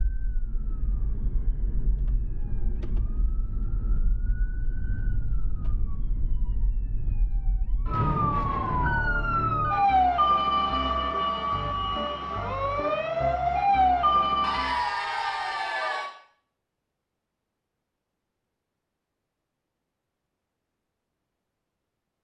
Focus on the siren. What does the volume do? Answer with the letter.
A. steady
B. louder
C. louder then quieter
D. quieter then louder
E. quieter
B.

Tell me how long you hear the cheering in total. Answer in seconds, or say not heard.
2 s.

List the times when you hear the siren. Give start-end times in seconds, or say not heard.
0.0-14.9.